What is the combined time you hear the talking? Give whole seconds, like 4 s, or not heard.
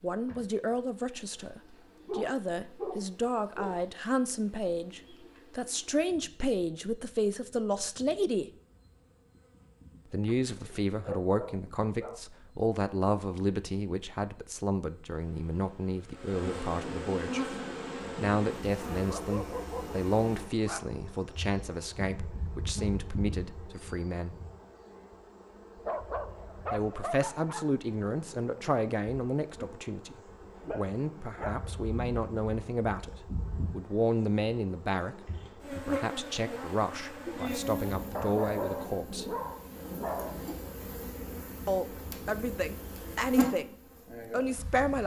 38 s.